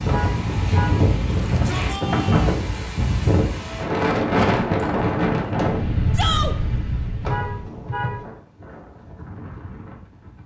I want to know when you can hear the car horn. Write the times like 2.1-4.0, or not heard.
0.1-1.0, 7.2-8.2.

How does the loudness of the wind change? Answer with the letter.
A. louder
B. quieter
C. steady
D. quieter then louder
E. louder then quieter
B.